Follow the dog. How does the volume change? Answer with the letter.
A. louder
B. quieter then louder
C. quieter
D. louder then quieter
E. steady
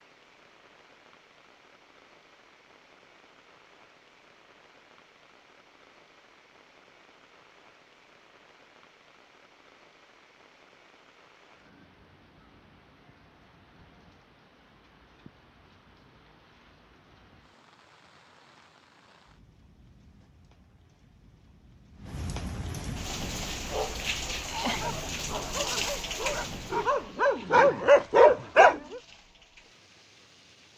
A.